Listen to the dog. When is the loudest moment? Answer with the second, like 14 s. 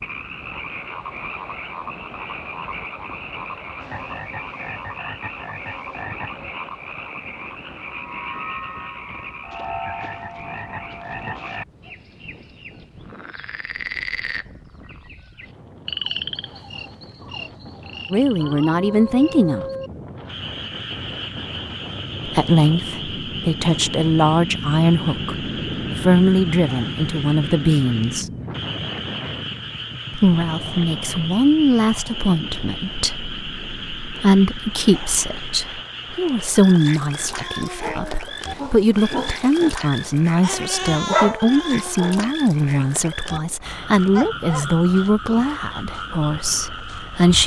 41 s.